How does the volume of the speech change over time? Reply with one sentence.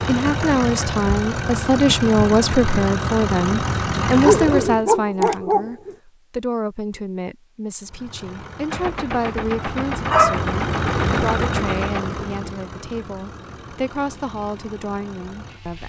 The volume of the speech goes down.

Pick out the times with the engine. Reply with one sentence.
You can hear the engine from 0.0 to 4.8 s and from 7.8 to 15.8 s.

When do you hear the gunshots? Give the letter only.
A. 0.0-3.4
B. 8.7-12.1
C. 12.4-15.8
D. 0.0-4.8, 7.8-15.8
B.